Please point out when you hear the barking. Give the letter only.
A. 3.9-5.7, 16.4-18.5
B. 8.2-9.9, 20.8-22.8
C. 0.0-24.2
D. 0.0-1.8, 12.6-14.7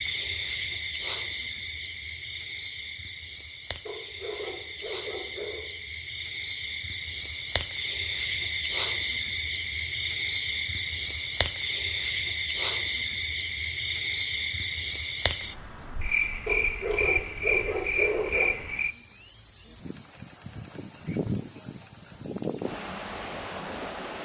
A.